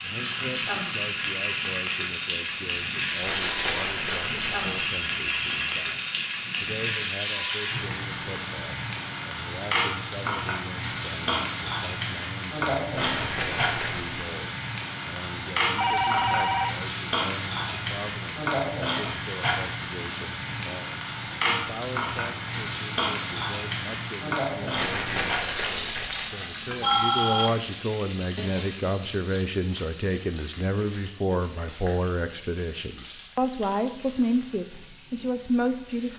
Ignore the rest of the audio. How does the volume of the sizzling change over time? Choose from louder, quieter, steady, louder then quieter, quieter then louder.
quieter.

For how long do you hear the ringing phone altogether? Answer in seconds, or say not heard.
3 s.